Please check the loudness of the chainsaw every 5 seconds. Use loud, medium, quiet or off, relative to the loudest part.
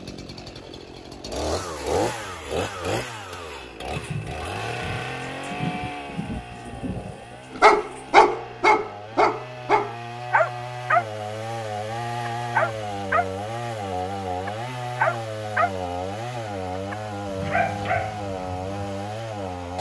loud, medium, loud, loud.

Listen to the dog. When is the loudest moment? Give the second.
8 s.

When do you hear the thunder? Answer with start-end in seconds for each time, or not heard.
3.9-8.1.